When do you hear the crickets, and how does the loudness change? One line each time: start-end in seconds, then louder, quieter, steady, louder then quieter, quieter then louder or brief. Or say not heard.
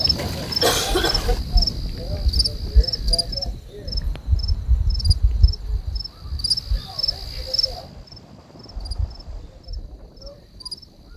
0.0-11.1 quieter.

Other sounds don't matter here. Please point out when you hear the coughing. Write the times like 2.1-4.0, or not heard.
0.1-1.4.